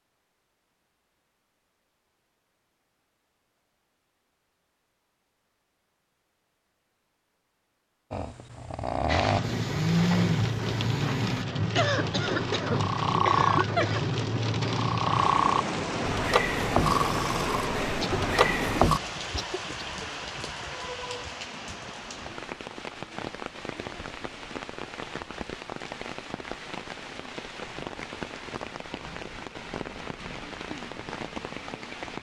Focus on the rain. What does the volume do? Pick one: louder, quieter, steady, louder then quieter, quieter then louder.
quieter.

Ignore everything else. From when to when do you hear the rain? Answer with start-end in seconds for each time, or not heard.
9.1-32.1.